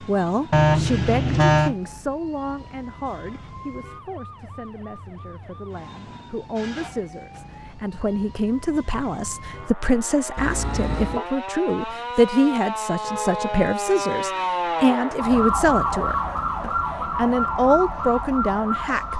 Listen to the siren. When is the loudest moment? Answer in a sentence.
The volume of the siren peaks at 16 seconds.